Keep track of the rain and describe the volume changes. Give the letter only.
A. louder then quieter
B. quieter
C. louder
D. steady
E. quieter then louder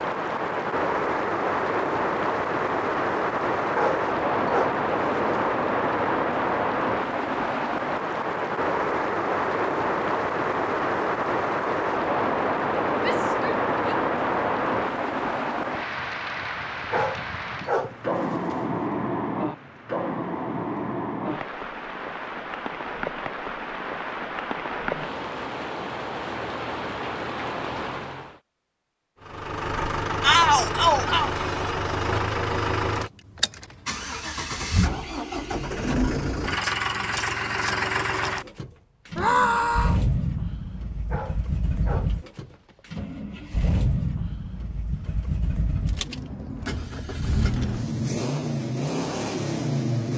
B.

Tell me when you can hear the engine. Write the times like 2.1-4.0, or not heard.
29.2-50.1.